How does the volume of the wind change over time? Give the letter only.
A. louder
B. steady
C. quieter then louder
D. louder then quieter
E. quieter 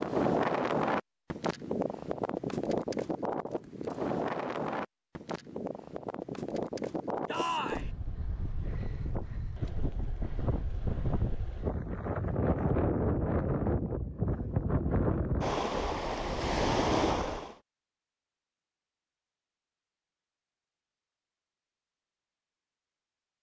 C.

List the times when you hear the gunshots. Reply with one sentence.
The gunshots can't be heard in this clip.